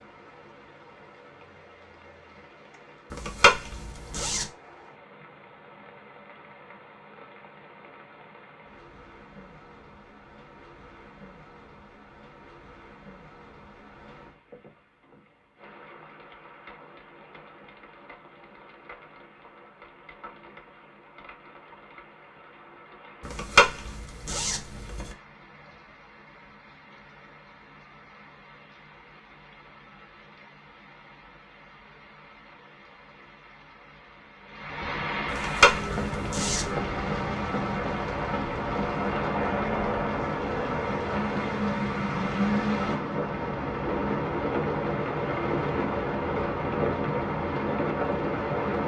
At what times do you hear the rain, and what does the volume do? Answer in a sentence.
You can hear the rain from 0.0 to 48.8 s, getting louder.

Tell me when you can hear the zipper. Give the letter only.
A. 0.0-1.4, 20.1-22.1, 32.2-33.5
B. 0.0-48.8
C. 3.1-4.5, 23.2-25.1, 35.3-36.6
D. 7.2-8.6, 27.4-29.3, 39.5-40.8
C.